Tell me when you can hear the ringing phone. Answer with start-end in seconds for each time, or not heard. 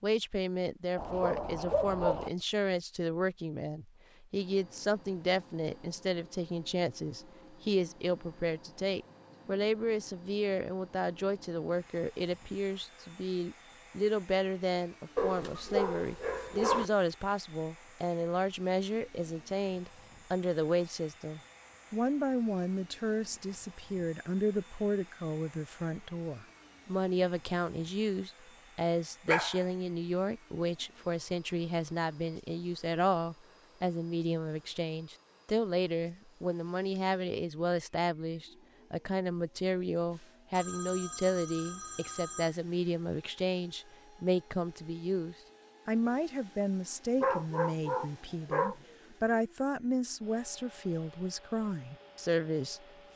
40.5-42.5.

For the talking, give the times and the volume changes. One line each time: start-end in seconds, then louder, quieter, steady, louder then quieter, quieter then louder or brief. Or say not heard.
0.0-53.1 steady.